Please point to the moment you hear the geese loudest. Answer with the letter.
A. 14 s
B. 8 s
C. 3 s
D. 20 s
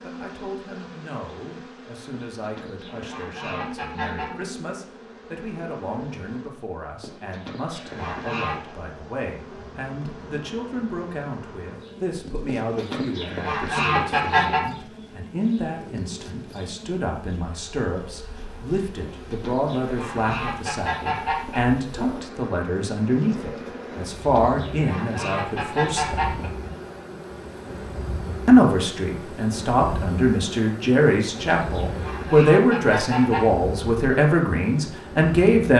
A.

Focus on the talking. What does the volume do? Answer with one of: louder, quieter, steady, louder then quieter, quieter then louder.
louder.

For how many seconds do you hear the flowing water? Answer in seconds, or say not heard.
not heard.